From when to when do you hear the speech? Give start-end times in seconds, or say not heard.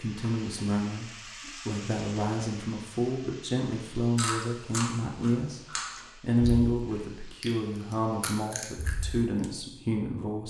0.0-10.4.